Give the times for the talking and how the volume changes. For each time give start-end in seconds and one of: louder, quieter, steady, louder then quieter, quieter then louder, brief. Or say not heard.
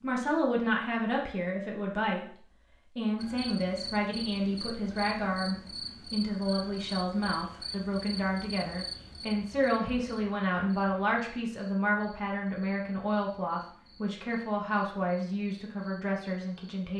0.0-16.9 steady.